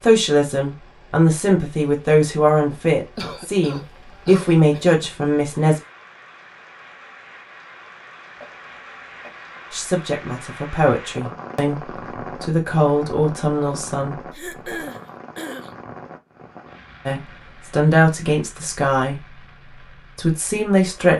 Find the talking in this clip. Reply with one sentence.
You can hear the talking from 0.0 to 5.8 s, from 9.7 to 14.2 s, from 17.1 to 19.4 s and from 20.1 to 21.1 s.